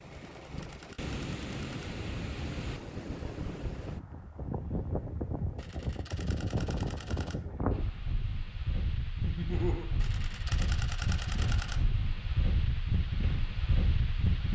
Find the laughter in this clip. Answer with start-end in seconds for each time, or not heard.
9.2-9.8.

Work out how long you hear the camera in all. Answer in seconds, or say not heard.
6 s.